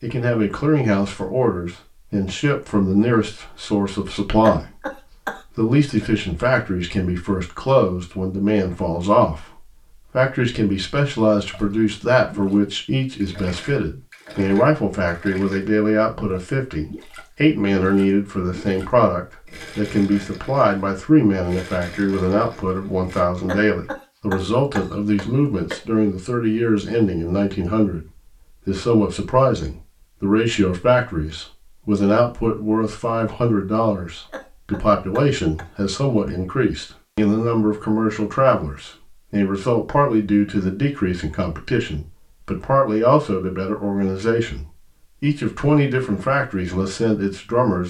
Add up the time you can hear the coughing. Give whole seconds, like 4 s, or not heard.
5 s.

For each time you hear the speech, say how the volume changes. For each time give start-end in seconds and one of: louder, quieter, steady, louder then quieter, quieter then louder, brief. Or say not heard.
0.0-47.8 steady.